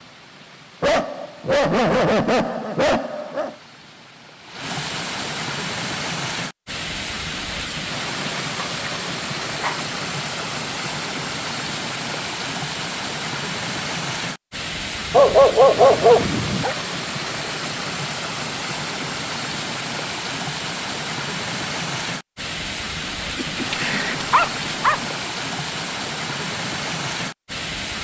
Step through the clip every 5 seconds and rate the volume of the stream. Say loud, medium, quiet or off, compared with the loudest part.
medium, loud, loud, loud, loud, loud.